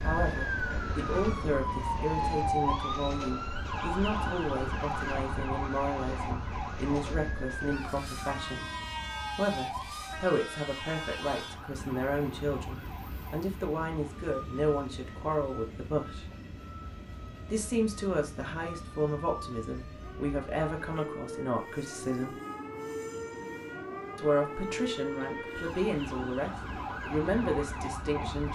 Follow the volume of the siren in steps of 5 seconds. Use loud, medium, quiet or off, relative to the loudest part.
loud, medium, quiet, quiet, medium, medium.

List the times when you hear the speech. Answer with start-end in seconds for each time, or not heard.
0.0-8.7, 9.3-16.2, 17.5-22.4, 24.1-26.5, 27.1-28.5.